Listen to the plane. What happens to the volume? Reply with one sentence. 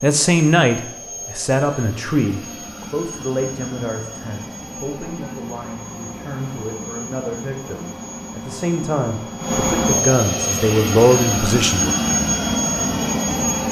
The loudness of the plane goes up.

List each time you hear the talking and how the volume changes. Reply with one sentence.
You can hear the talking from 0.0 to 11.9 s, getting quieter then louder.